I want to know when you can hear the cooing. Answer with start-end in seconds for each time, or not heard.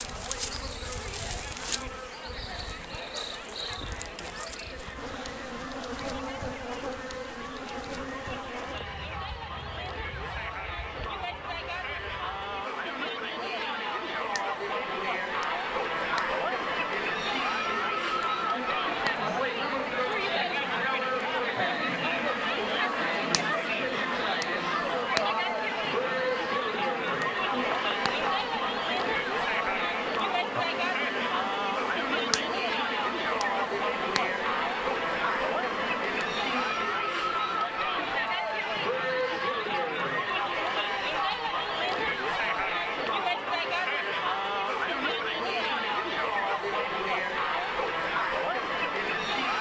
not heard.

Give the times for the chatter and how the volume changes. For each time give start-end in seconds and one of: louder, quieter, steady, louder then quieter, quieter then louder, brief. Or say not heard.
0.0-49.5 louder.